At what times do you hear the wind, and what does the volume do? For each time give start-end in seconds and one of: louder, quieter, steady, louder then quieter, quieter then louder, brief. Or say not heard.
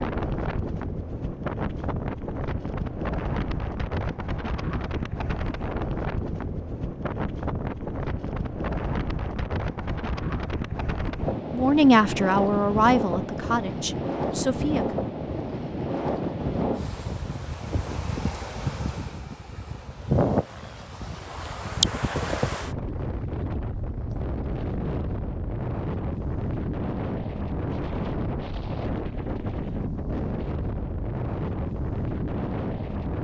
0.0-33.2 steady.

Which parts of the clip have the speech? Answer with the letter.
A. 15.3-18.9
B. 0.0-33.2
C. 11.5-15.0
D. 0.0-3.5
C.